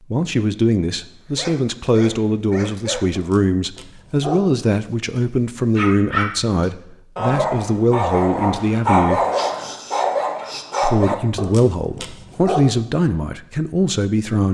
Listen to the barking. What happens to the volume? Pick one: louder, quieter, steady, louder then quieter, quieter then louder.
louder then quieter.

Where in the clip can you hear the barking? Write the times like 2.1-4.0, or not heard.
1.2-4.5, 5.2-13.2.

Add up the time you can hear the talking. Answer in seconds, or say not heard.
13 s.